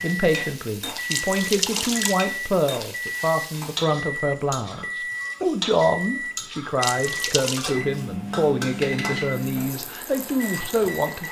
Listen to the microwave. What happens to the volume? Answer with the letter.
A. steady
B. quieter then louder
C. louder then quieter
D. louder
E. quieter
A.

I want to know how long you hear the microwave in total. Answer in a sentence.
You can hear the microwave for 11 seconds altogether.